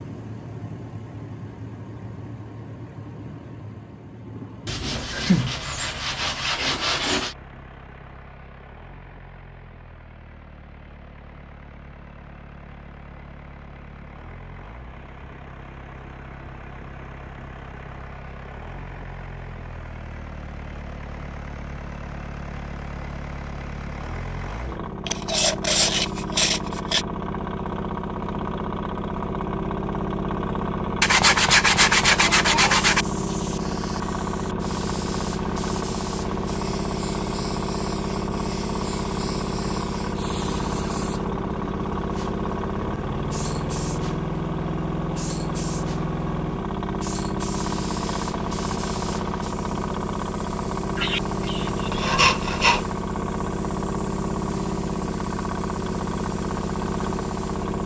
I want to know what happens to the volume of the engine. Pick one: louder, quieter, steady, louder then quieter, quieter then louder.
louder.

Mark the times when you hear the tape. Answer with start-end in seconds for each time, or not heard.
not heard.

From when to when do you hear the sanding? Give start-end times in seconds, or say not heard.
4.7-7.3, 25.1-27.1, 31.0-33.0, 51.0-52.9.